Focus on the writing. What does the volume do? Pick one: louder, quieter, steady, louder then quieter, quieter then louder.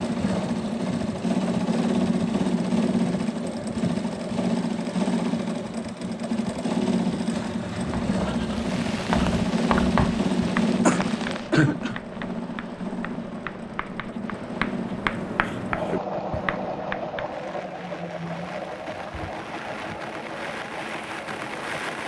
quieter then louder.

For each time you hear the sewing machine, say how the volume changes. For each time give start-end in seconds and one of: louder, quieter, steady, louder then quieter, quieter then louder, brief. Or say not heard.
0.0-22.0 quieter.